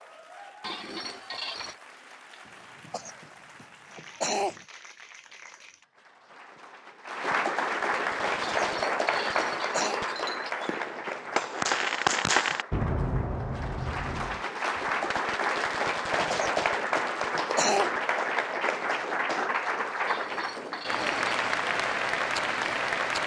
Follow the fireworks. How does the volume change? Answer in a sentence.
The loudness of the fireworks goes up, then down.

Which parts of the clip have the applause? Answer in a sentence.
The applause can be heard from 0.0 to 23.2 s.